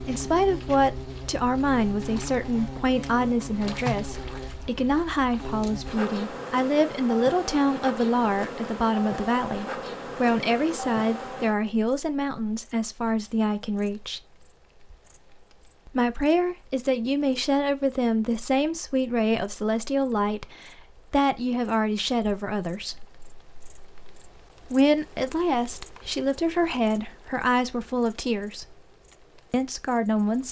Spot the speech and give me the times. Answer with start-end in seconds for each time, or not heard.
0.0-14.2, 15.8-23.1, 24.6-28.8, 29.5-30.4.